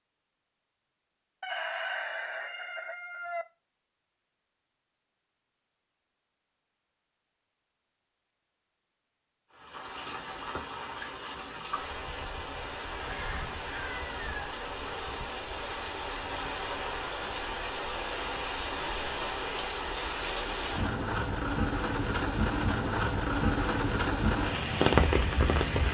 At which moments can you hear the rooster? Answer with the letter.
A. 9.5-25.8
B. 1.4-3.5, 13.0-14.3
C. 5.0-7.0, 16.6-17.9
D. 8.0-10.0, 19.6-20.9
B.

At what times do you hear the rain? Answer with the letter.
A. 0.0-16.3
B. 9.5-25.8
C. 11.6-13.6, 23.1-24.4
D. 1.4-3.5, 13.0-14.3
B.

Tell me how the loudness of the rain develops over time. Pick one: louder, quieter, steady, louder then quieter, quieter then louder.
louder.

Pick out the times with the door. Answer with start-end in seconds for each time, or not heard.
not heard.